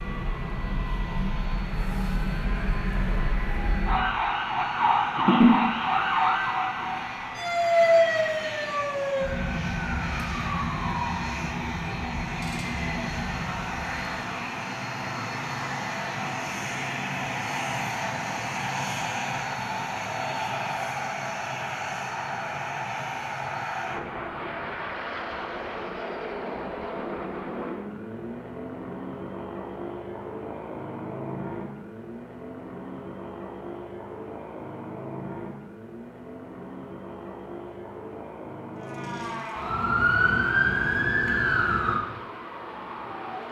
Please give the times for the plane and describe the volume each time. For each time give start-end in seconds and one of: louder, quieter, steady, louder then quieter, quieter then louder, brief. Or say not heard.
0.0-43.4 louder then quieter.